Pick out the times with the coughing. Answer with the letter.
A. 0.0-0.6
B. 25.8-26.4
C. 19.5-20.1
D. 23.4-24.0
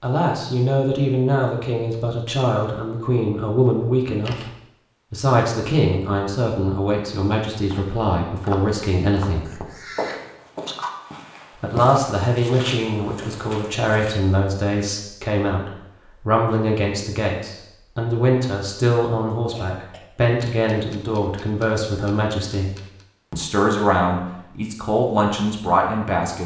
C.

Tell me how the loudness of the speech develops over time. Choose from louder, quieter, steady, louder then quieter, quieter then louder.
steady.